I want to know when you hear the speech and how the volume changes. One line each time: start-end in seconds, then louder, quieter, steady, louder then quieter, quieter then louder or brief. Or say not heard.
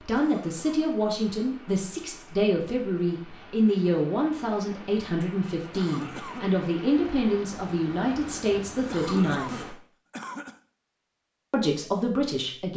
0.0-9.8 steady
11.5-12.7 brief.